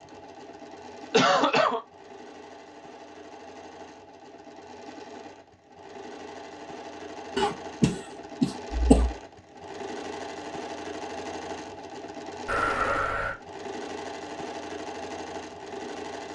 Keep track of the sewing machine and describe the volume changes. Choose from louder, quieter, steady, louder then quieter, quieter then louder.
louder.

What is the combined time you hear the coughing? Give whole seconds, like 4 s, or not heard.
3 s.